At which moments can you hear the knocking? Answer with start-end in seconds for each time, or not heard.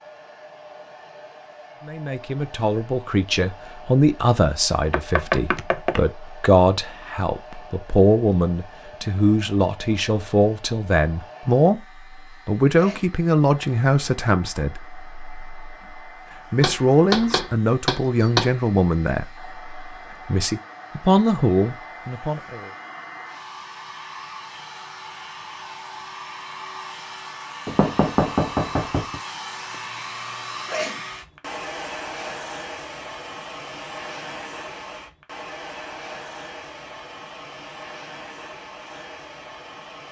4.9-6.0, 16.6-18.6, 27.6-29.2.